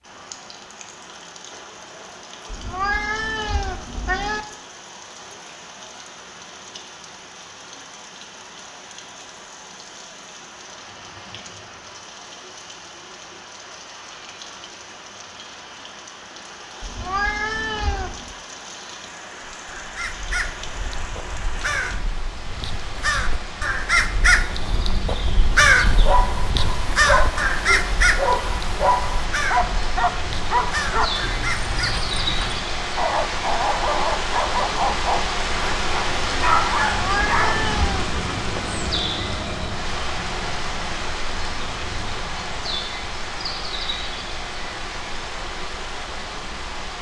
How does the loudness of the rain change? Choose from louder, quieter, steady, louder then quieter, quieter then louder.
louder.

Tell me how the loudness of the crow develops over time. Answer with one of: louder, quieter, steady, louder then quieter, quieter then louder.
louder then quieter.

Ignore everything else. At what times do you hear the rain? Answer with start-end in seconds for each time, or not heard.
0.0-46.9.